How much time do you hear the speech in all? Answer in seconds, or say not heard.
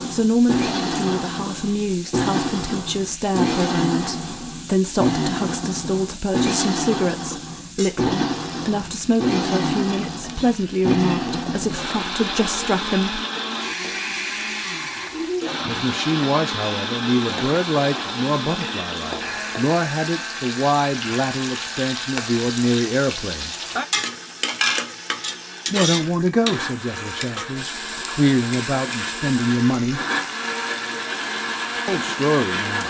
26 s.